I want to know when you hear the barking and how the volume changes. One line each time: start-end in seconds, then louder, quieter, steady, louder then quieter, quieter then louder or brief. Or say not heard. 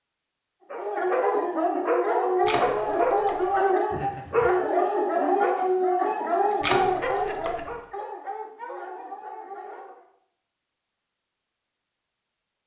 0.7-10.1 quieter.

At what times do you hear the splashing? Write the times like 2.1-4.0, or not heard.
2.4-3.6, 6.6-7.8.